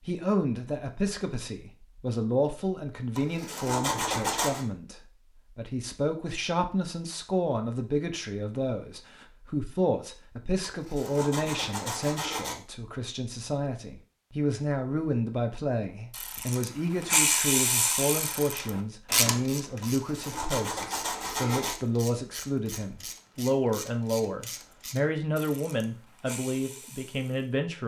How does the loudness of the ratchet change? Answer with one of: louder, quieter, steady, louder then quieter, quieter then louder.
quieter.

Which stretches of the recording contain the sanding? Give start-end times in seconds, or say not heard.
3.1-4.7, 10.6-12.6, 19.8-21.8.